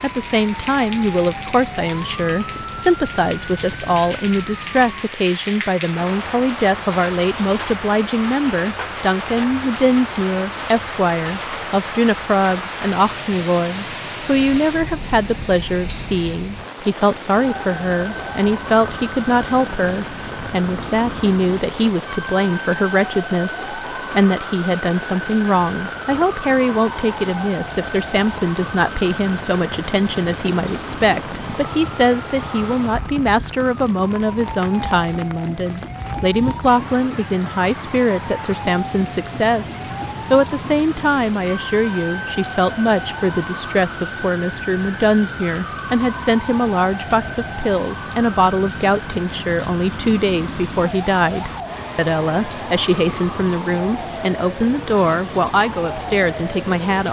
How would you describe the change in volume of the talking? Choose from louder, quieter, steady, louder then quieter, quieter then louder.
steady.